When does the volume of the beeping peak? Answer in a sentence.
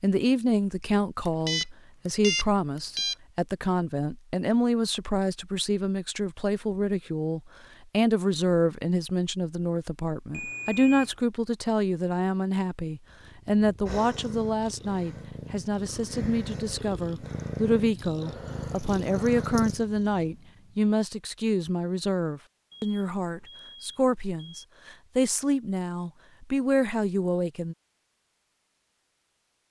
The volume of the beeping peaks at 2 seconds.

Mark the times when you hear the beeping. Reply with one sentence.
You can hear the beeping from 1.2 to 3.1 s, from 10.3 to 11.1 s and from 22.7 to 24.6 s.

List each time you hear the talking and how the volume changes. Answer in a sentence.
The talking can be heard from 0.0 to 27.8 s, at a steady volume.